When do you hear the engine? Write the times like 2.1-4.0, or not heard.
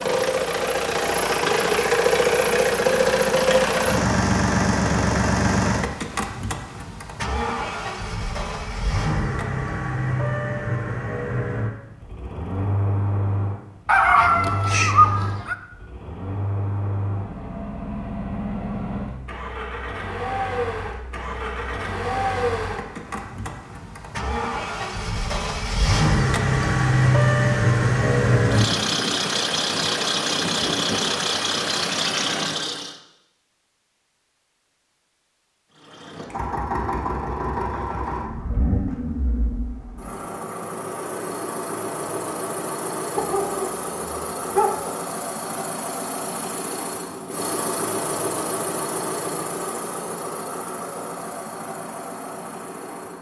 0.0-33.0, 35.7-53.1.